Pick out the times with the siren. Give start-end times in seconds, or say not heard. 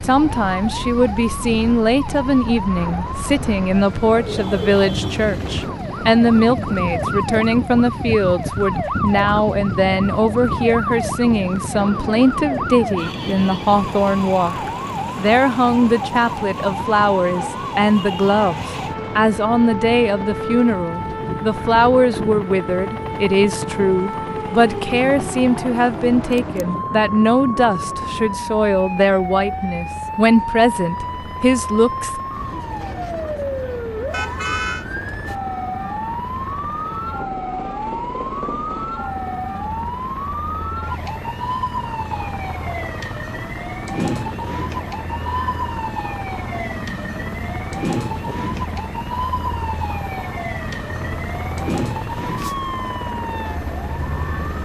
0.0-54.6.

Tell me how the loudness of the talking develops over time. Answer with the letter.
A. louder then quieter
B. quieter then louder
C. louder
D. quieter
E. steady
E.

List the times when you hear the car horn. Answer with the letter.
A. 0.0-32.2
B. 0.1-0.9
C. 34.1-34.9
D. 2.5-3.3
C.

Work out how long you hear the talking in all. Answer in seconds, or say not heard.
32 s.